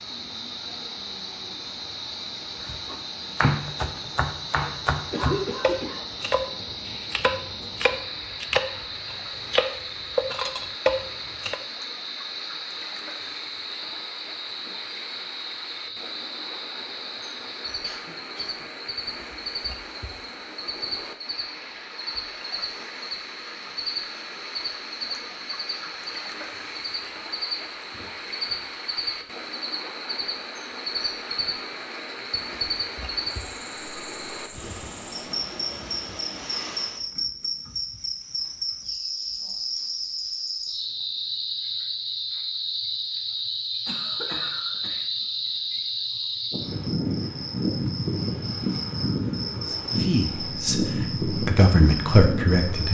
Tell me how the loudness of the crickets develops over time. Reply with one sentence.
The volume of the crickets goes up.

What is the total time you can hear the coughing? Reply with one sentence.
You can hear the coughing for 3 seconds altogether.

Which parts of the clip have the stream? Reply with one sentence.
You can hear the stream from 0.0 to 37.0 s.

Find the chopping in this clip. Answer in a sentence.
You can hear the chopping from 2.6 to 11.6 s.